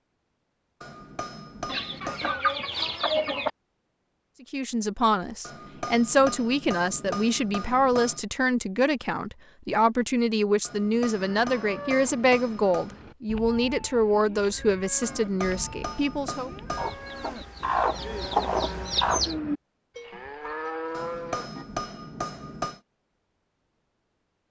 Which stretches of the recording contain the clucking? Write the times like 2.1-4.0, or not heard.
1.6-3.5, 16.8-19.4.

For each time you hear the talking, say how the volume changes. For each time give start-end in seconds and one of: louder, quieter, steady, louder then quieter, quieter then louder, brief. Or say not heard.
4.4-16.5 steady.